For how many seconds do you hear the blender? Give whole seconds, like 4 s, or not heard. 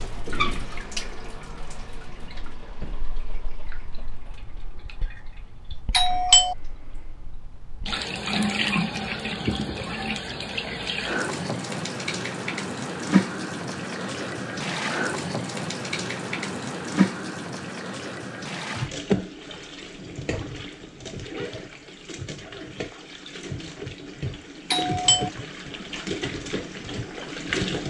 not heard.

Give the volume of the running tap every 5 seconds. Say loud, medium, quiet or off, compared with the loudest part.
medium, loud, loud, loud, medium, loud.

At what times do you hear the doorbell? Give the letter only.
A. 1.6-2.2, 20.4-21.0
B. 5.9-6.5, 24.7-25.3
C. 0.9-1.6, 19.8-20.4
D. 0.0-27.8
B.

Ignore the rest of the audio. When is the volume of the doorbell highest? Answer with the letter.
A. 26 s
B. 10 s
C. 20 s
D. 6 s
D.